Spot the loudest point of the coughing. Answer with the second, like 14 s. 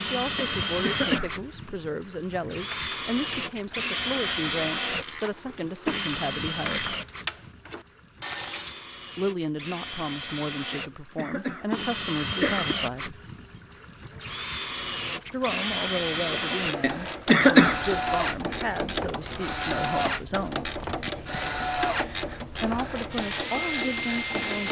17 s.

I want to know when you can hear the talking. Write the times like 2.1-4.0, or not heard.
0.0-7.0, 9.2-13.2, 15.3-20.7, 22.6-24.6.